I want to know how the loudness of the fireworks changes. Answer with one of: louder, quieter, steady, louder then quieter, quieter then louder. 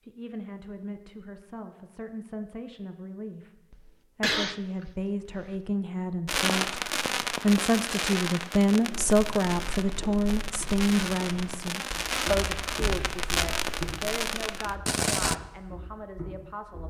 quieter then louder.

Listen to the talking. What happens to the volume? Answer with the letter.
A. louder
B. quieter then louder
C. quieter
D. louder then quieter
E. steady
D.